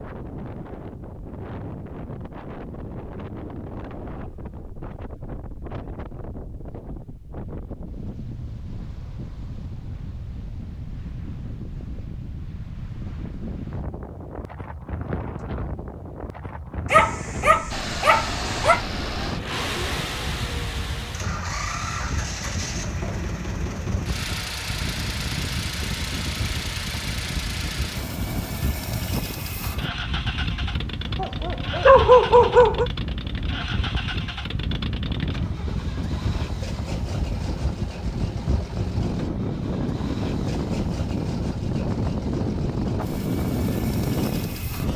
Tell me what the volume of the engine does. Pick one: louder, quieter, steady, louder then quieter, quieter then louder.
quieter.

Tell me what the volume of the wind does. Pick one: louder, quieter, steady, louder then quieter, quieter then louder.
louder.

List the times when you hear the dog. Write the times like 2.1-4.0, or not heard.
16.9-18.8, 31.1-32.9.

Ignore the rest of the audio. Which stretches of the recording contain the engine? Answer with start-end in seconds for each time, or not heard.
17.7-44.9.